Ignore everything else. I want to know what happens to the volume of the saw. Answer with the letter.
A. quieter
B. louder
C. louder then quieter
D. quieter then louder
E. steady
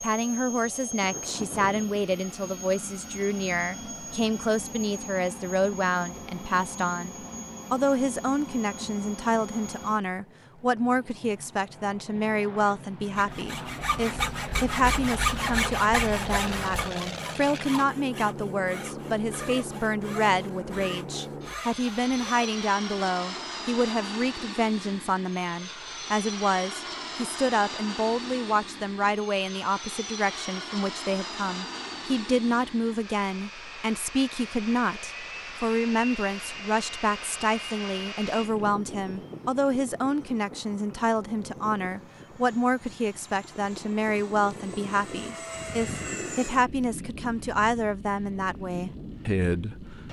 A.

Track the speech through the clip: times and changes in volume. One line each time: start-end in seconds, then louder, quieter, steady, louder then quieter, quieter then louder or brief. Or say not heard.
0.0-50.0 steady.